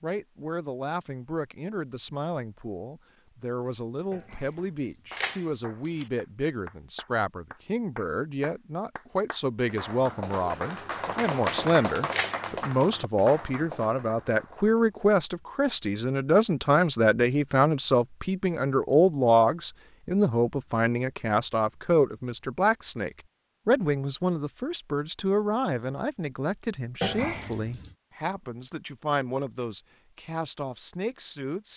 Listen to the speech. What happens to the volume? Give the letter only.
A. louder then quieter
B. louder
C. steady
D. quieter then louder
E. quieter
A.